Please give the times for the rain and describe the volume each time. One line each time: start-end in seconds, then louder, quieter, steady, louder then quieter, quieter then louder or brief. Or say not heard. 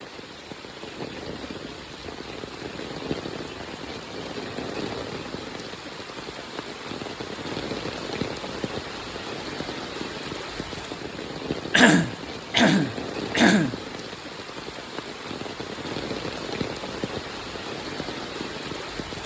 0.0-19.2 steady.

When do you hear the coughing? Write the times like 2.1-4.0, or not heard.
11.7-13.8.